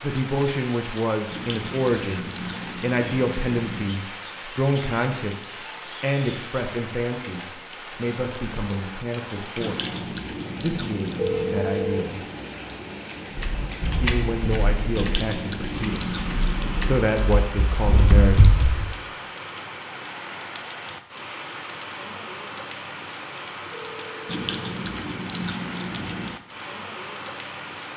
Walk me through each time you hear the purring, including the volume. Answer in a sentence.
You can't hear the purring here.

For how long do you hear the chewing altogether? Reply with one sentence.
You can hear the chewing for 9 seconds altogether.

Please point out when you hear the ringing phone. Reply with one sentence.
The ringing phone can be heard from 11.2 to 12.1 s and from 23.7 to 24.8 s.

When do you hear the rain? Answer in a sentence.
The rain can be heard from 0.0 to 27.9 s.